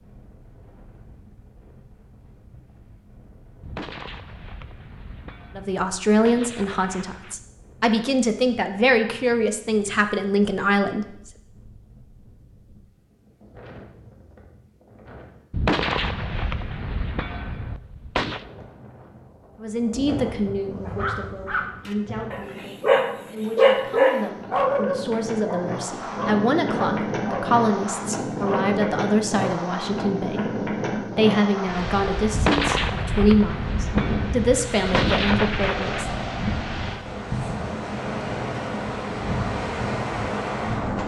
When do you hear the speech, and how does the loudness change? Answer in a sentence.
The speech can be heard from 5.5 to 11.1 s, getting quieter then louder; and from 19.6 to 36.1 s, getting louder.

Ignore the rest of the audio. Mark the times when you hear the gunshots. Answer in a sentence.
The gunshots can be heard from 3.6 to 7.3 s, from 15.5 to 18.4 s and from 32.3 to 36.0 s.